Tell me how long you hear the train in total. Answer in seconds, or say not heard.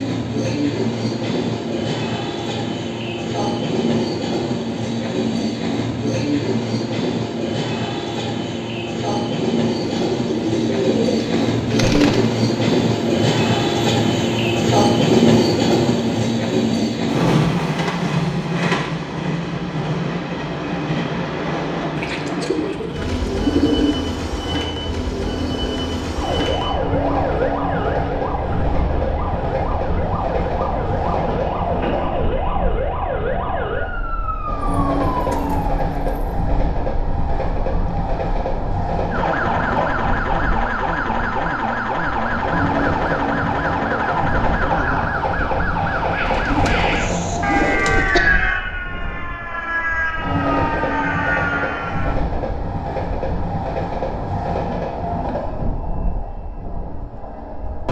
58 s.